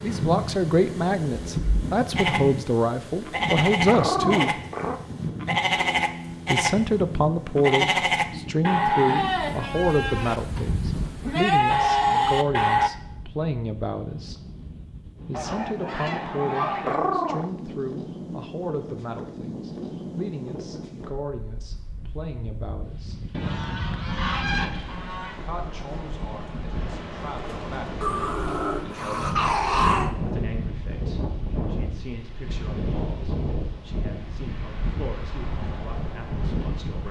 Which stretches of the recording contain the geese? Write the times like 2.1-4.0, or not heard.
15.3-17.0, 23.3-25.4.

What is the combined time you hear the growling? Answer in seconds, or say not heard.
4 s.